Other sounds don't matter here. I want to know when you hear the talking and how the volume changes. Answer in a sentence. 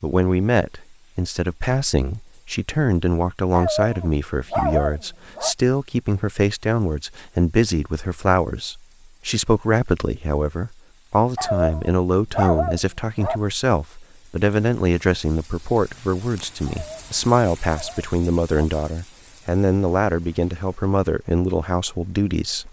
You can hear the talking from 0.0 to 22.6 s, at a steady volume.